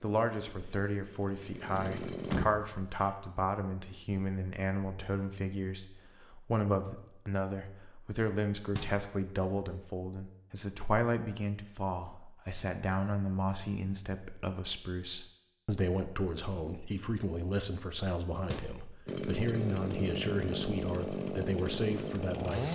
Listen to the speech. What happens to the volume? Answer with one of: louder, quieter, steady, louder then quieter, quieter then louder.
steady.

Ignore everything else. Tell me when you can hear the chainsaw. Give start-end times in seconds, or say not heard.
0.0-2.5, 19.1-22.6.